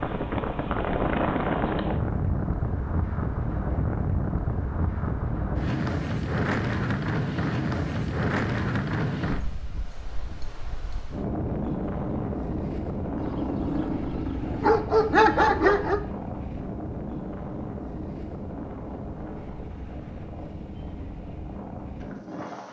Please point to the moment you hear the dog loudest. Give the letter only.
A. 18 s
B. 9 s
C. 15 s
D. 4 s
C.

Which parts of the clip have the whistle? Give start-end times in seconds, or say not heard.
not heard.